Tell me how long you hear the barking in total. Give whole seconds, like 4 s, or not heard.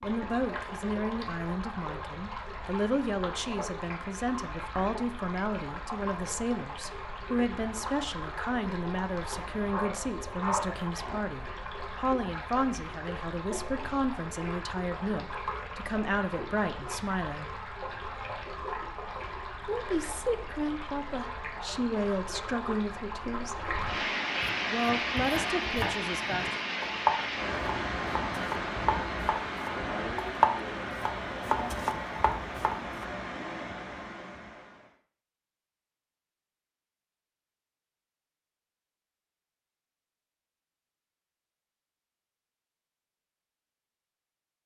2 s.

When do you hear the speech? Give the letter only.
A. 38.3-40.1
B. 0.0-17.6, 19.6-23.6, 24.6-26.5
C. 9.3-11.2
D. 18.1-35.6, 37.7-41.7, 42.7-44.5
B.